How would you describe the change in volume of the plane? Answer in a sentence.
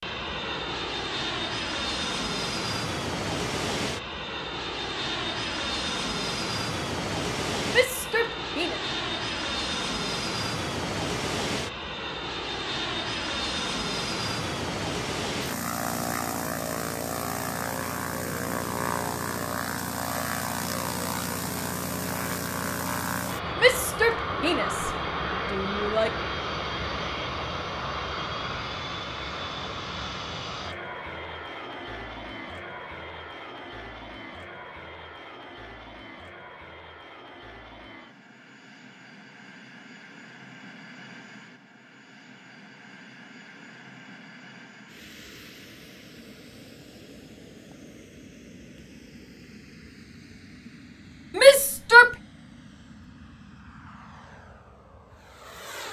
The volume of the plane goes down.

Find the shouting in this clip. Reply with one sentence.
The shouting can be heard from 7.7 to 8.8 s, from 23.6 to 26.1 s and from 51.3 to 52.1 s.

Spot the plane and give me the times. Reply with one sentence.
You can hear the plane from 0.0 to 55.8 s.